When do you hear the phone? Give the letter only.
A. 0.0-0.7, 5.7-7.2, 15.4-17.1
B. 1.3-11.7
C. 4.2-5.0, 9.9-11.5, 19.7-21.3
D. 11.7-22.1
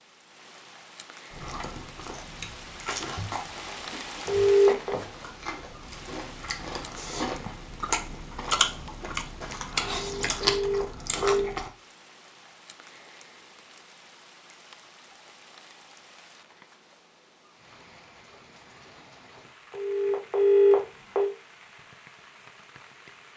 C.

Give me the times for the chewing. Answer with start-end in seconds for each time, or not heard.
1.3-11.7.